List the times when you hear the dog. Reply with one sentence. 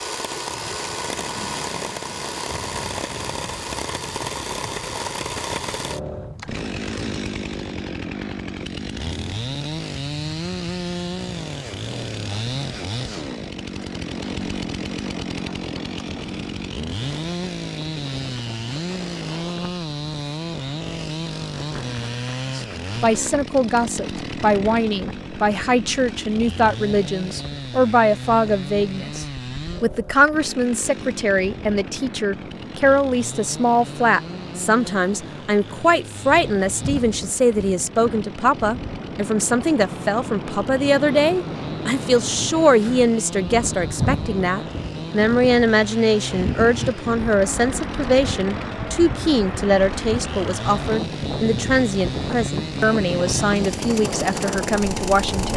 The dog can't be heard in this clip.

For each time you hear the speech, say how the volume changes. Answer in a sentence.
You can hear the speech from 22.6 to 55.5 s, at a steady volume.